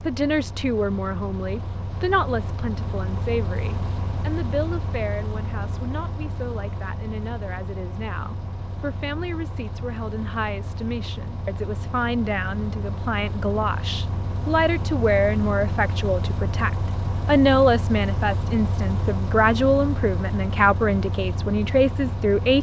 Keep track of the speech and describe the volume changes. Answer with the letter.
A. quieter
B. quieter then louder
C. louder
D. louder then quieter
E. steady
B.